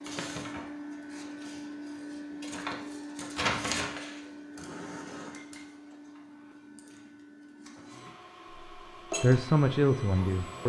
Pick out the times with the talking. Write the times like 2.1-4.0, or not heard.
9.2-10.6.